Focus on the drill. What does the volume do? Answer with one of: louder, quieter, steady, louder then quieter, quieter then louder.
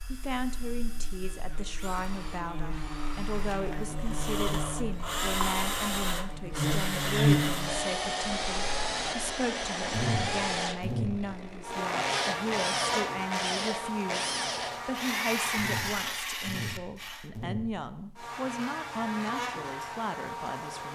louder.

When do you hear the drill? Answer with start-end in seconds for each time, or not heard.
0.0-17.3.